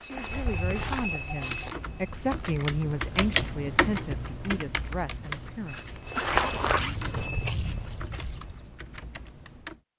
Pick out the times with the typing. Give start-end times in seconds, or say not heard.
1.3-9.8.